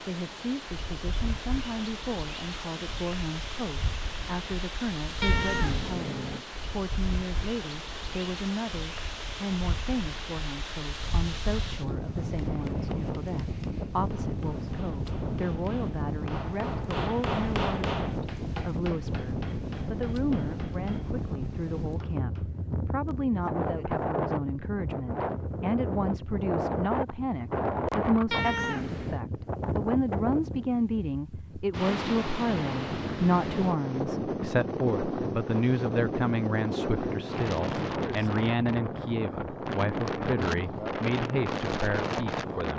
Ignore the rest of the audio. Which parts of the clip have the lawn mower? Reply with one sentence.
The lawn mower can't be heard in this clip.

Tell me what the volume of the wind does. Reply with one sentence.
The loudness of the wind goes up.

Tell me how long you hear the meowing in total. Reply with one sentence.
You can hear the meowing for 2 seconds altogether.